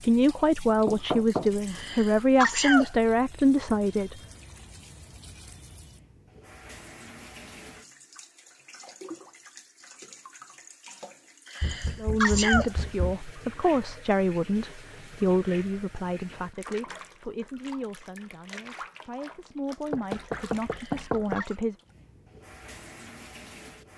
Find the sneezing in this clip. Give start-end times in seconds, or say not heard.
1.6-2.9, 11.4-12.8, 20.6-21.6.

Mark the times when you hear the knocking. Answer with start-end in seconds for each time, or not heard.
0.8-1.5, 11.6-13.2, 19.9-21.4.